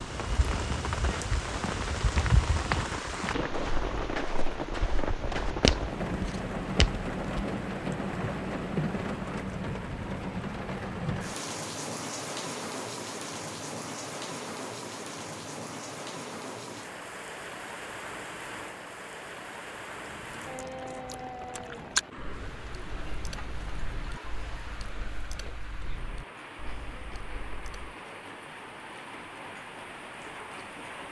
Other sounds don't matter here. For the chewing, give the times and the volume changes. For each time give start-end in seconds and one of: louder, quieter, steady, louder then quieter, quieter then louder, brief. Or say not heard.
20.1-27.9 louder then quieter.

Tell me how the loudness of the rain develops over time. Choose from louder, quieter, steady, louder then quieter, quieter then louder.
quieter.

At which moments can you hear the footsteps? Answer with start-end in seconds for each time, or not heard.
0.0-7.5.